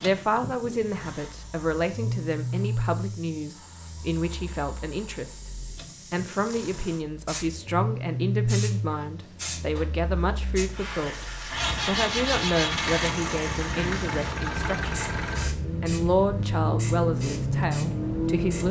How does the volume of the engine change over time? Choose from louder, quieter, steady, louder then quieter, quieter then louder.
quieter then louder.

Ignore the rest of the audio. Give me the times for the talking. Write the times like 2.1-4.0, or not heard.
0.0-5.4, 6.1-11.2, 11.8-14.9, 15.8-18.6.